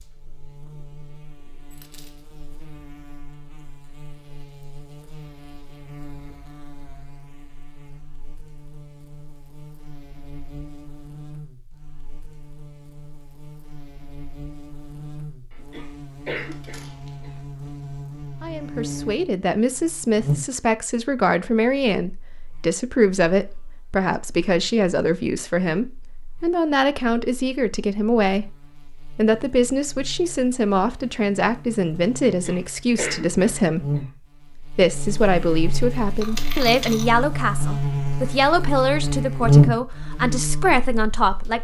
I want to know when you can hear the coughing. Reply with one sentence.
The coughing can be heard from 15.5 to 17.3 s and from 32.3 to 34.0 s.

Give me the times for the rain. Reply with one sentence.
The rain can't be heard in this clip.